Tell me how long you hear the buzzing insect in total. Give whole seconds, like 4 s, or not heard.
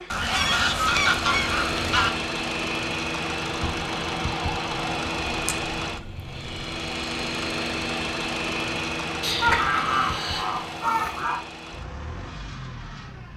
not heard.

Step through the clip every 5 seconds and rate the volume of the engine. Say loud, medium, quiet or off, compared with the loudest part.
loud, loud, medium.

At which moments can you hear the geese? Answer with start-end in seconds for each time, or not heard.
0.1-2.1, 4.7-7.0, 9.2-11.4.